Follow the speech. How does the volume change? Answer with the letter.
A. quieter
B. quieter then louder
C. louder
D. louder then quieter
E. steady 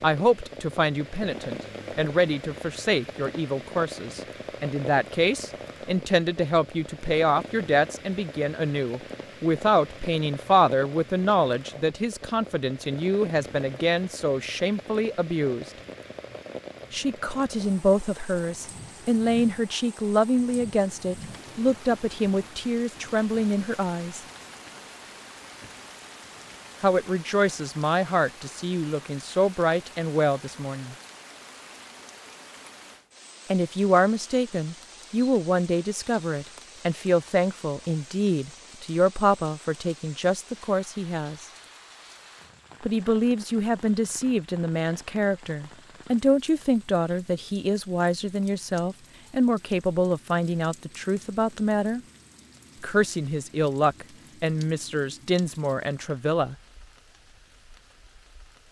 E.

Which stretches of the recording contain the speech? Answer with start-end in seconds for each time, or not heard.
0.0-15.7, 16.9-24.2, 26.8-30.9, 33.5-41.5, 42.8-52.0, 52.8-56.5.